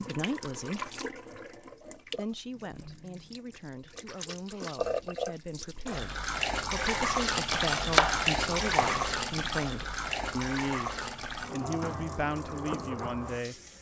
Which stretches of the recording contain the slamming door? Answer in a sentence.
The slamming door can't be heard in this clip.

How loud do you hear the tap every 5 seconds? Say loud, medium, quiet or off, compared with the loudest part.
medium, loud, medium.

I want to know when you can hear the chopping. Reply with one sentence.
You can hear the chopping from 7.5 to 9.2 s.